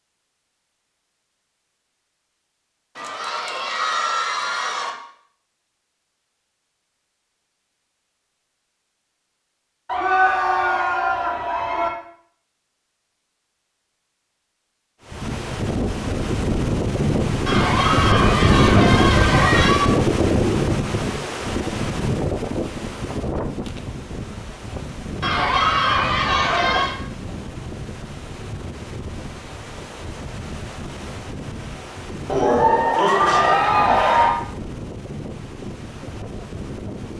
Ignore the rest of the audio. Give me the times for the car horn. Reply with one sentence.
You can't hear the car horn here.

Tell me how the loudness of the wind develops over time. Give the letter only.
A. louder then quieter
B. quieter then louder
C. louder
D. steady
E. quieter
E.